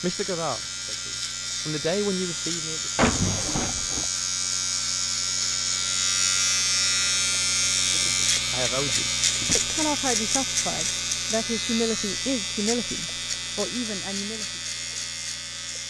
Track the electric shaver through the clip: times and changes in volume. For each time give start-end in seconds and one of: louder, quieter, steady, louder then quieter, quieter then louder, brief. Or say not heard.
0.0-15.8 louder then quieter.